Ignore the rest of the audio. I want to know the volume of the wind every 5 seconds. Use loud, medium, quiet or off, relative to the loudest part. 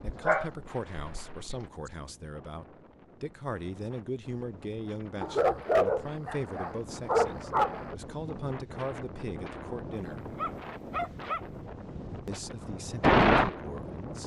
quiet, quiet, loud.